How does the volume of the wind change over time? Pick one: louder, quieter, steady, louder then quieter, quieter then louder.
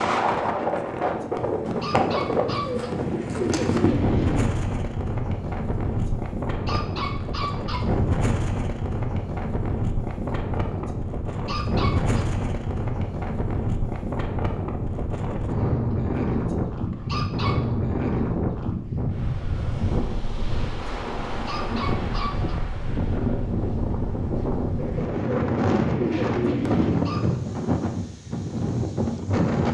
steady.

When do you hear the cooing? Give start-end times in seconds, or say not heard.
2.4-4.5, 24.8-27.1.